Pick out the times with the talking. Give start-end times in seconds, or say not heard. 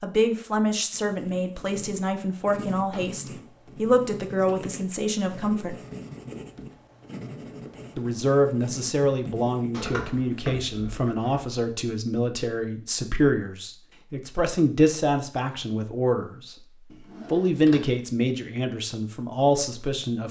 0.0-5.8, 8.0-16.6, 17.3-20.2.